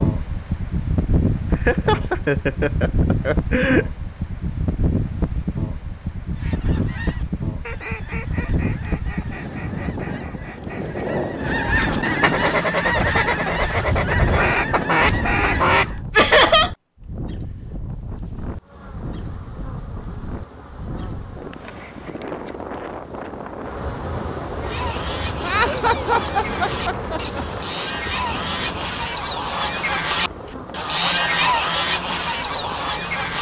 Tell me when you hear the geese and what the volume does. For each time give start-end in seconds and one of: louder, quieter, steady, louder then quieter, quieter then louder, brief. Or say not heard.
6.3-16.0 louder
24.6-33.3 louder.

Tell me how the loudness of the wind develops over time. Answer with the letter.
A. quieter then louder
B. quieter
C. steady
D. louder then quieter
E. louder
B.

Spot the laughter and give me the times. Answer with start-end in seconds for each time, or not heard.
1.5-3.9, 16.1-16.7, 25.4-27.4.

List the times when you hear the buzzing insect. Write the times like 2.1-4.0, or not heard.
18.6-33.3.